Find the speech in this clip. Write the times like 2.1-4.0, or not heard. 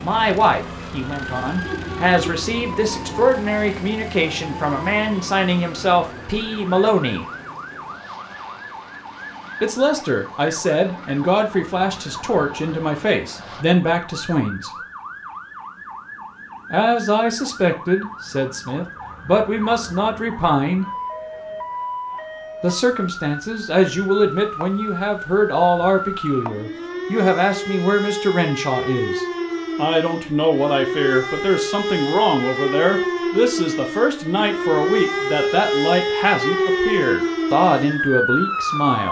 0.0-7.2, 9.6-14.7, 16.7-20.9, 22.6-39.0.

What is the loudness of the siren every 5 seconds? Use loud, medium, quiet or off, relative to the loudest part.
quiet, quiet, quiet, quiet, medium, medium, loud, loud.